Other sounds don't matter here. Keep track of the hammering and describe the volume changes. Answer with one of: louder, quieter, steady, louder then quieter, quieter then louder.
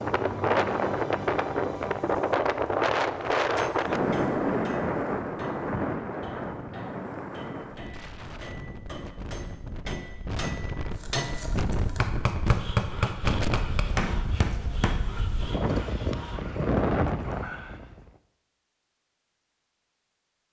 louder.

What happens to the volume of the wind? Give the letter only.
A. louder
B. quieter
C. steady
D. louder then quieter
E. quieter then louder
E.